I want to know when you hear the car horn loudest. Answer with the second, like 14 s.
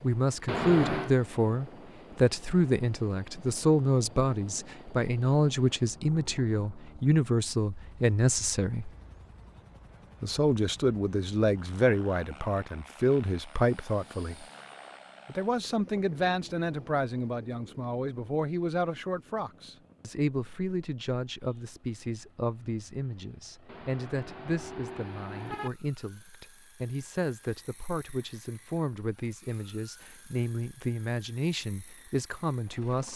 1 s.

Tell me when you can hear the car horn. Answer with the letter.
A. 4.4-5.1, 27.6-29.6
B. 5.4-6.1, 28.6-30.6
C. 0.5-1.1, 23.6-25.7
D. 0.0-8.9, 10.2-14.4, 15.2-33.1
C.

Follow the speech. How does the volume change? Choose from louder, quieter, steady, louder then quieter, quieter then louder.
quieter.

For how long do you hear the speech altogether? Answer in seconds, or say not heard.
31 s.